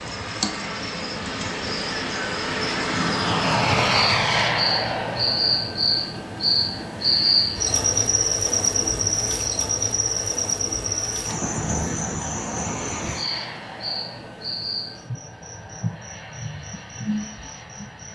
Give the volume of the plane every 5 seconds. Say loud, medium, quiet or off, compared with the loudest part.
loud, medium, quiet, quiet.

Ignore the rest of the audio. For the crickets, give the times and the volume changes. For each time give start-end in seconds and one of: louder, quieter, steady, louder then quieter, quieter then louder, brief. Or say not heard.
0.0-18.1 louder then quieter.